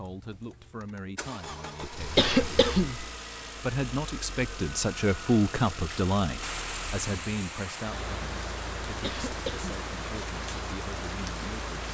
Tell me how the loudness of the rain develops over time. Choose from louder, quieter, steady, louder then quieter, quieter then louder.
steady.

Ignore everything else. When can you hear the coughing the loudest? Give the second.
2 s.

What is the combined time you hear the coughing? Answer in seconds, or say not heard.
2 s.